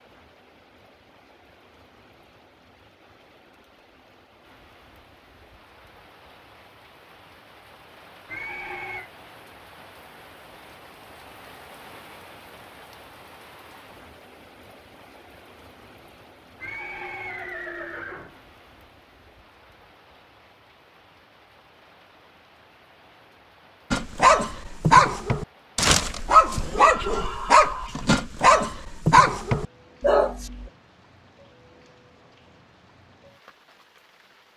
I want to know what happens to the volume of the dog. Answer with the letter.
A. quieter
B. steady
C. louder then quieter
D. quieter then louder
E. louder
B.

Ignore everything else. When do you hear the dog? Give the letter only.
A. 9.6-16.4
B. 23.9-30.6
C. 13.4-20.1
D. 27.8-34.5
B.